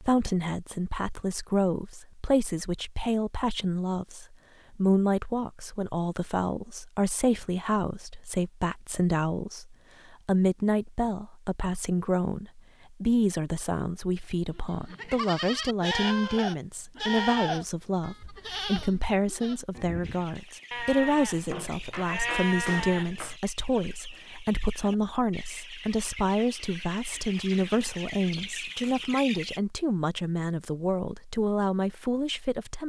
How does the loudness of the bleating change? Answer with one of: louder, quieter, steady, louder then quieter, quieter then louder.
quieter then louder.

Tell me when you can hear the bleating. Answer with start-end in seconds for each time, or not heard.
14.6-23.4.